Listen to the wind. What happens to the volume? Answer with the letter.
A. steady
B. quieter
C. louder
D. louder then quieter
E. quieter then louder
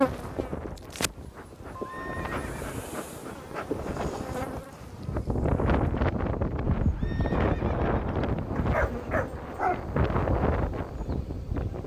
C.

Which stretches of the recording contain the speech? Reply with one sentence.
You can't hear the speech here.